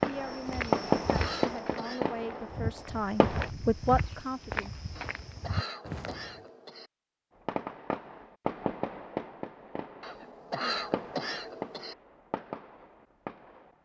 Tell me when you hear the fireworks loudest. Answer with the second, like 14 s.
1 s.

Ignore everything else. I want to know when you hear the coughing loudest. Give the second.
11 s.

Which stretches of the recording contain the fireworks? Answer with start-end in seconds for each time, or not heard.
0.0-3.5, 7.5-13.8.